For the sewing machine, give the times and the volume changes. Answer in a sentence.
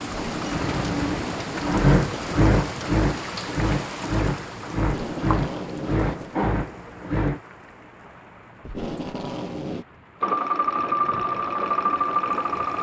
The sewing machine can be heard from 0.0 to 7.4 s, getting louder then quieter; and briefly from 10.2 to 12.7 s.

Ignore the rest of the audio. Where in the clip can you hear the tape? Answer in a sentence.
The tape can be heard from 0.1 to 1.6 s, from 4.8 to 6.3 s and from 8.6 to 9.8 s.